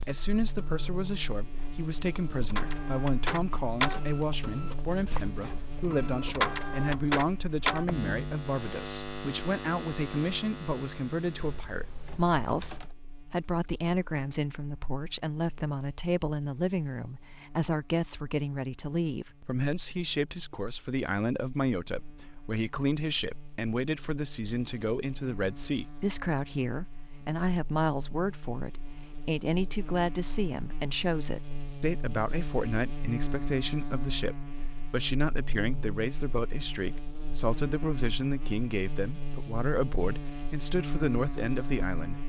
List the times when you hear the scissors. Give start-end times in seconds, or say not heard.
not heard.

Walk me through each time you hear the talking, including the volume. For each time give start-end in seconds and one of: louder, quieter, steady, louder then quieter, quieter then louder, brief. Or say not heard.
0.0-42.2 steady.